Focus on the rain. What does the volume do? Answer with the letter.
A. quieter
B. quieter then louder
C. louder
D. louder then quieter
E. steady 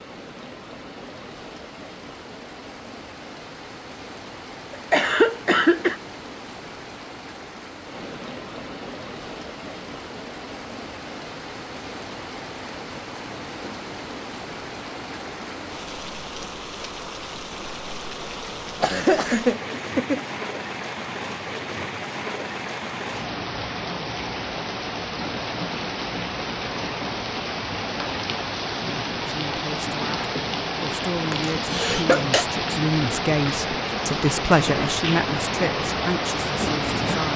C.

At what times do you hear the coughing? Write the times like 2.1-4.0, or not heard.
4.7-6.0, 18.8-20.2, 31.3-32.5.